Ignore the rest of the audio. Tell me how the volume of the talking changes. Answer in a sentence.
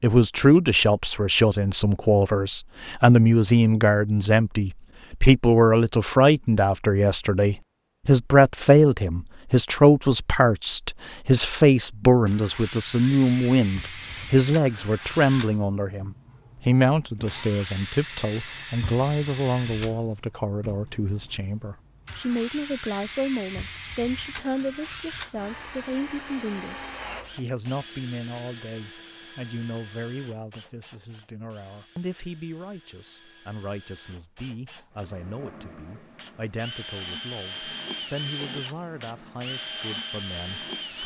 The loudness of the talking goes down.